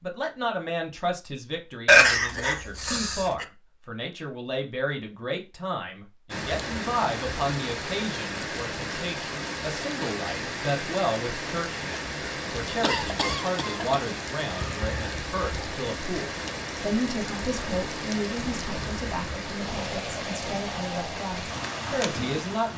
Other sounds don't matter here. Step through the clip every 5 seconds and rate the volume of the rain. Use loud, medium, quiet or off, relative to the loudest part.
off, loud, loud, loud, loud.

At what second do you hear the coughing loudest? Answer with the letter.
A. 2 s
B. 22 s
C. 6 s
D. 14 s
A.